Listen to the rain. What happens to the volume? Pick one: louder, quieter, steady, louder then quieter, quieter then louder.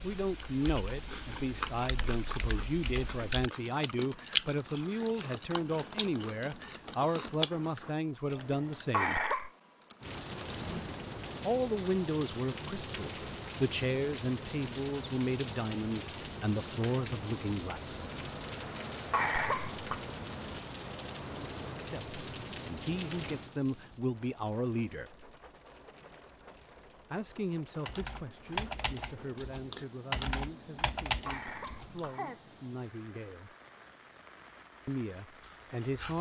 quieter.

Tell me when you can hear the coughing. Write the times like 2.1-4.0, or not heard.
8.9-9.5, 19.1-20.0, 31.2-32.4.